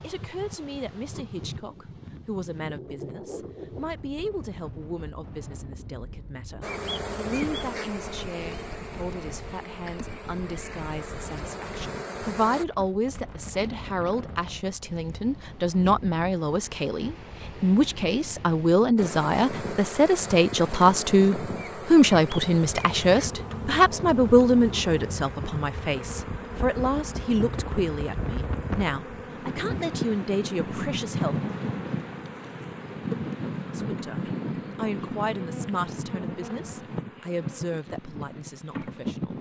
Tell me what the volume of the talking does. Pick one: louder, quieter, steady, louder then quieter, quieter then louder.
louder then quieter.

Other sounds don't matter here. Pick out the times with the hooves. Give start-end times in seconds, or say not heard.
not heard.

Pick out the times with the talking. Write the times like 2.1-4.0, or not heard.
0.0-31.4, 33.7-39.3.